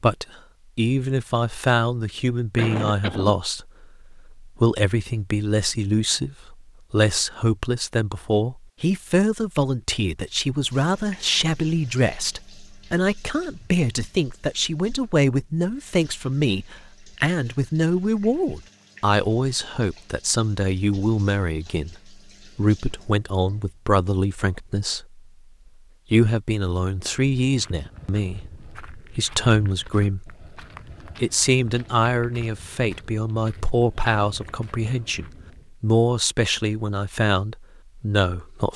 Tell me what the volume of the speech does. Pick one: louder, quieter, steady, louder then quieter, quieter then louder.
steady.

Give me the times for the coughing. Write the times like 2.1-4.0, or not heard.
2.5-3.4.